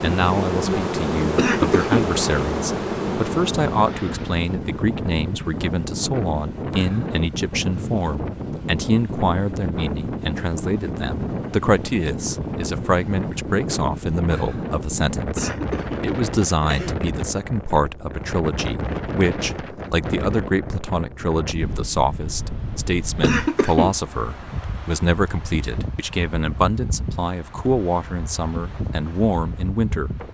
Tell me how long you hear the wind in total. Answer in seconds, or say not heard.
30 s.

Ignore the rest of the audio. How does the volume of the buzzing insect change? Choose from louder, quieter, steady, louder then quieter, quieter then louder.
quieter.